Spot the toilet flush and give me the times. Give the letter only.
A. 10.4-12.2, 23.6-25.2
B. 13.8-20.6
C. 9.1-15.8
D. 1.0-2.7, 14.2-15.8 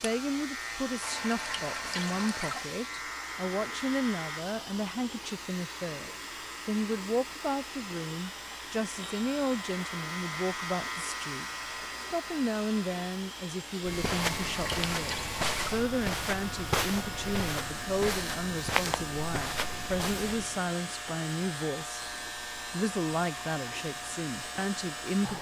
D.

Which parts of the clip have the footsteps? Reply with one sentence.
You can hear the footsteps from 13.8 to 20.6 s.